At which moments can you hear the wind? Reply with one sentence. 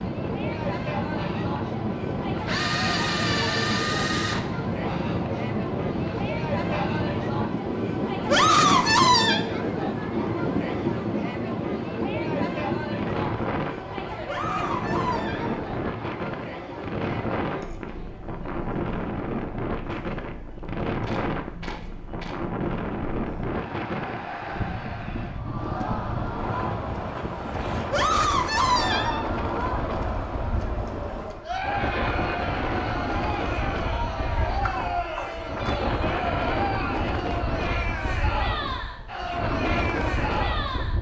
The wind can be heard from 0.0 to 40.9 s.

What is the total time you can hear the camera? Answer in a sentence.
You can hear the camera for 4 seconds altogether.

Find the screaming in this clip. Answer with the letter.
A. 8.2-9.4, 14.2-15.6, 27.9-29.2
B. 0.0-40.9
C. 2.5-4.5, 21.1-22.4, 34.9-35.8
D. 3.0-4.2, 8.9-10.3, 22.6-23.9
A.